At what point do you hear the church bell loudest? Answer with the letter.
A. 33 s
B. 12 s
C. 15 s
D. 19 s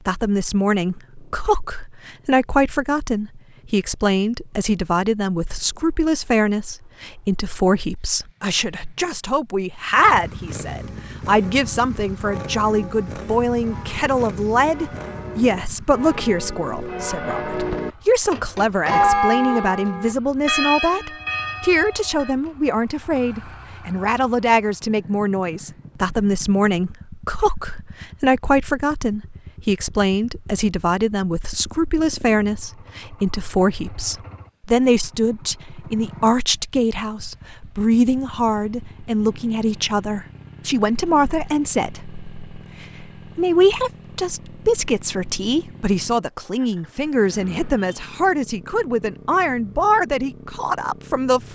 D.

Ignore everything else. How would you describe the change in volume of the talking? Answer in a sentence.
The volume of the talking stays about the same.